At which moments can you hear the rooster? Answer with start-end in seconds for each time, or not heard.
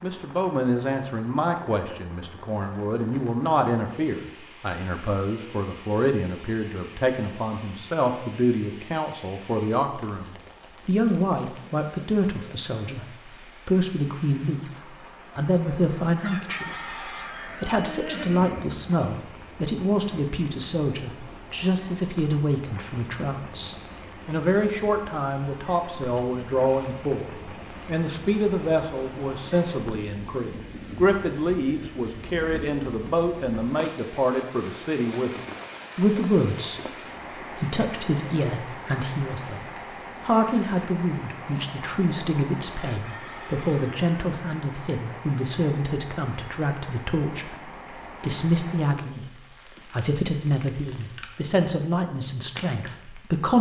16.2-17.8, 42.9-44.0.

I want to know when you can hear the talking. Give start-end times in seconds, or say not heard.
0.0-36.8, 37.4-39.6, 40.2-53.5.